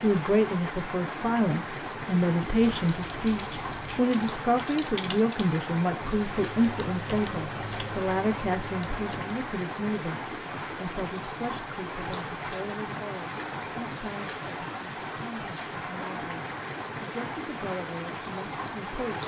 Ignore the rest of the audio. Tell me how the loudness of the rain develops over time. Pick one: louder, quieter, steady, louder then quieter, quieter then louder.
steady.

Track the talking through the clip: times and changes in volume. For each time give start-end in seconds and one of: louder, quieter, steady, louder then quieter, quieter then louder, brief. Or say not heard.
0.0-19.2 quieter.